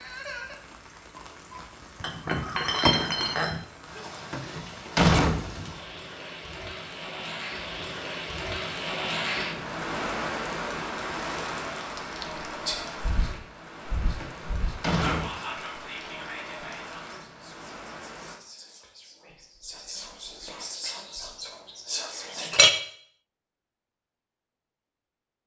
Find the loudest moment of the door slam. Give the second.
5 s.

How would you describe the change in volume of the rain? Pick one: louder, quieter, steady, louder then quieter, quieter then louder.
louder then quieter.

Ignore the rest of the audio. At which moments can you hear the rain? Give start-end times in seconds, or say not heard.
0.0-18.4.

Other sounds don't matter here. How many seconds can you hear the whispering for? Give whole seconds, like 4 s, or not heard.
10 s.